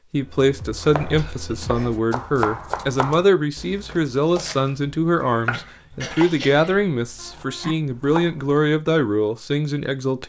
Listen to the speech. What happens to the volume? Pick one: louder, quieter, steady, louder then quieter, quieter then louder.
steady.